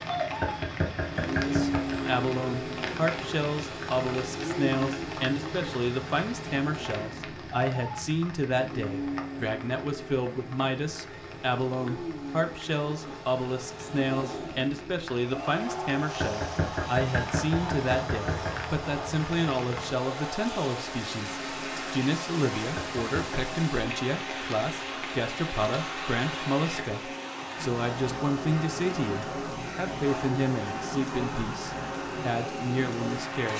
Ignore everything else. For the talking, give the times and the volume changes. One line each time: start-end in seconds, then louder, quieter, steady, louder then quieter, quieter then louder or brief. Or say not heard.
1.4-33.5 steady.